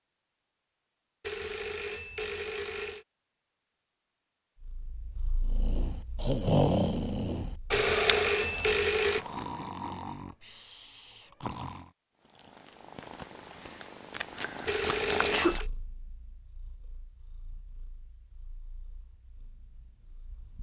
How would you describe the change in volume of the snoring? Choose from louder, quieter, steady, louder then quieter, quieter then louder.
quieter.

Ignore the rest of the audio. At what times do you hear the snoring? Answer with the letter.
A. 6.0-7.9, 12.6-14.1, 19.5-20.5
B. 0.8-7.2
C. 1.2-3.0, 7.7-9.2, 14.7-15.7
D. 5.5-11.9
D.